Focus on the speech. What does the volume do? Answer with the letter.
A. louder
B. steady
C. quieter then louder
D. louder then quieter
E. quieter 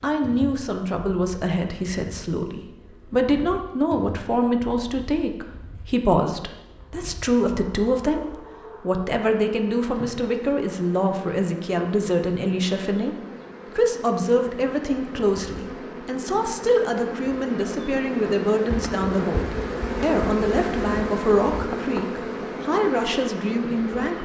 B.